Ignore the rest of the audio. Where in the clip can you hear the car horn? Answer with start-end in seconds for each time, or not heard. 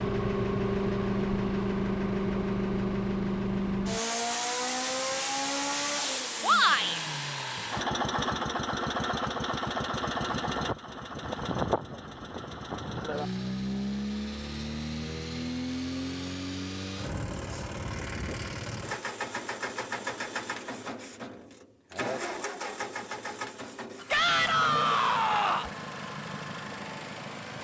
not heard.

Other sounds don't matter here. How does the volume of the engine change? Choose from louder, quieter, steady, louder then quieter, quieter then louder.
quieter.